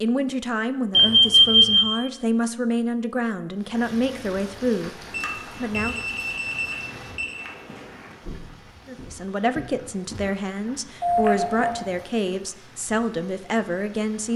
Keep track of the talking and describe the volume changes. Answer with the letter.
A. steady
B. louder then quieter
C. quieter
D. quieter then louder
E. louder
A.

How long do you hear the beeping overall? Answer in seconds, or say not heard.
4 s.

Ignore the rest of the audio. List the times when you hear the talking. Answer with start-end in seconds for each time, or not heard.
0.0-6.0, 8.8-14.3.